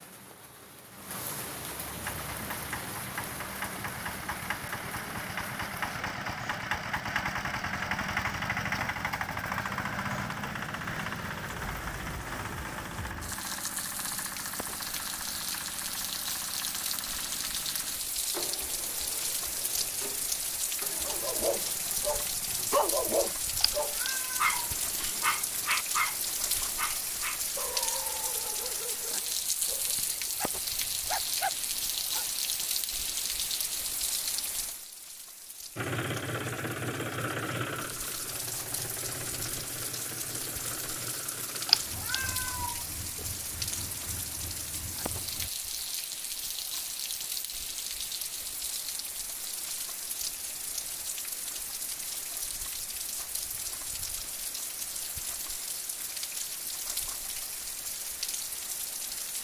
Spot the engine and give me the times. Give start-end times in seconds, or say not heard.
2.0-22.6, 35.8-45.5.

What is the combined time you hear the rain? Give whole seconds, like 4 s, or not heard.
59 s.